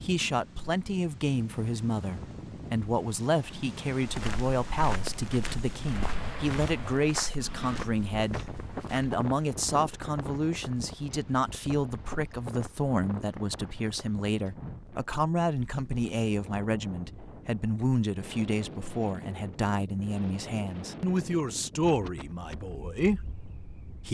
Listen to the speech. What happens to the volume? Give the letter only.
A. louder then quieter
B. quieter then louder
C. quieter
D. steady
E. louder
D.